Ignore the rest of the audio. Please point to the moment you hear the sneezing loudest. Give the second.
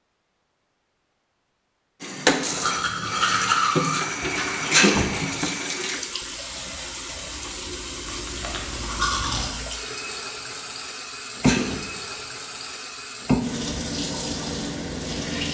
5 s.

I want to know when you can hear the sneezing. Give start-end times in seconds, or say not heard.
4.7-5.2, 11.4-12.2.